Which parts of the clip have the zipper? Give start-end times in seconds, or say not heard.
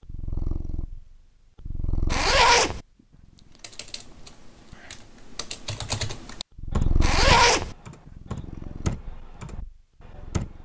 2.1-2.8, 7.0-7.8.